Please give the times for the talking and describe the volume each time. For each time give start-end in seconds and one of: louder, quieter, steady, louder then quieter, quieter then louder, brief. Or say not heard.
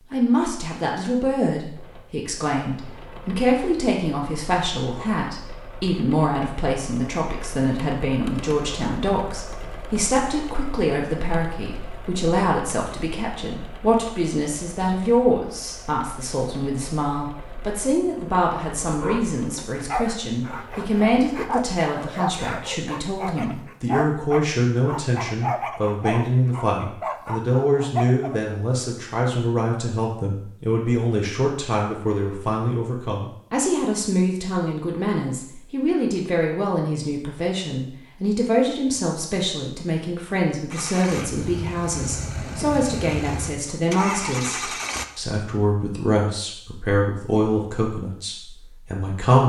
0.1-49.4 steady.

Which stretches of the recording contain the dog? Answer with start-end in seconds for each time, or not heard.
19.0-28.4.